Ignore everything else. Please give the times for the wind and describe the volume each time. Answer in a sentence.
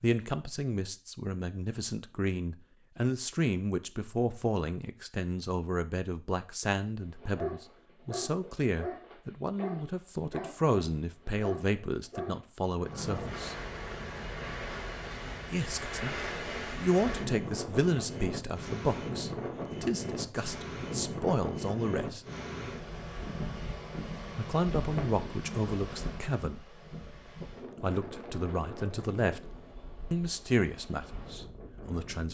You can hear the wind from 12.7 to 32.2 s, getting quieter.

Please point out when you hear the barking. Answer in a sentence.
You can hear the barking from 7.0 to 12.4 s.